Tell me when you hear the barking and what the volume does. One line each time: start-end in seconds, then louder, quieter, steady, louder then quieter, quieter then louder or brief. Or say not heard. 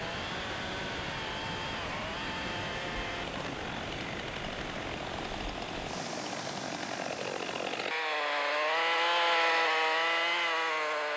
not heard.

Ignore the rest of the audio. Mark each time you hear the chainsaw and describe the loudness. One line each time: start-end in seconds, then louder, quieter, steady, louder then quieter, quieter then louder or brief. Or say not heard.
0.0-11.1 louder.